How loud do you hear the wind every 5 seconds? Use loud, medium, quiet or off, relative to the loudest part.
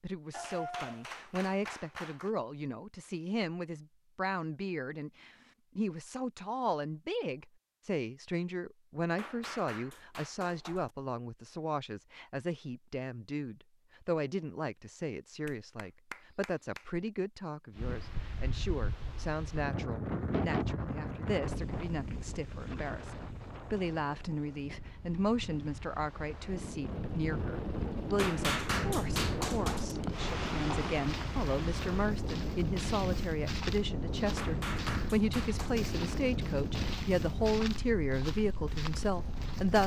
off, off, off, medium, loud, loud, loud, loud.